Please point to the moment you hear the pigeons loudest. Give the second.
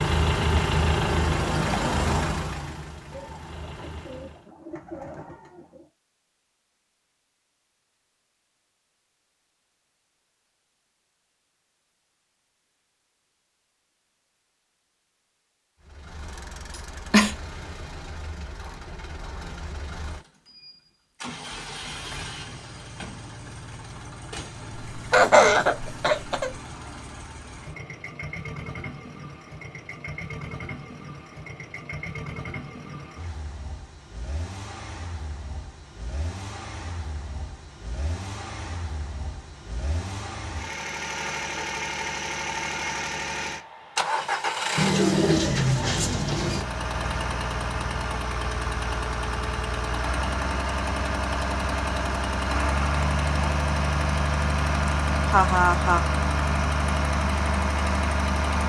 45 s.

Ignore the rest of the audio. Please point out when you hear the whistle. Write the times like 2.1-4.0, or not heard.
not heard.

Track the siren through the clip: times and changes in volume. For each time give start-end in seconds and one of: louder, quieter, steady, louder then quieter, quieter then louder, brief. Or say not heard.
not heard.